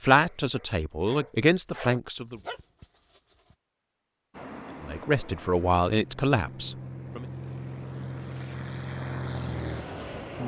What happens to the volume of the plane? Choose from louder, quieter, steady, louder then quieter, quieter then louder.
louder.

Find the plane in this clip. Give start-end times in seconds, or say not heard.
4.3-10.4.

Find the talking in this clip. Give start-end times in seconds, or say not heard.
0.0-2.4, 4.8-7.2.